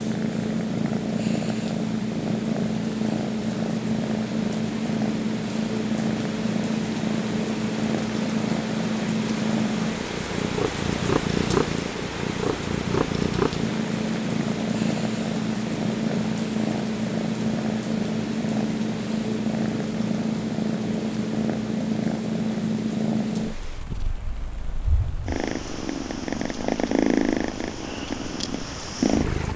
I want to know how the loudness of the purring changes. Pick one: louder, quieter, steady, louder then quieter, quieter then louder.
steady.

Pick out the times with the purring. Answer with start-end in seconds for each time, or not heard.
0.0-29.5.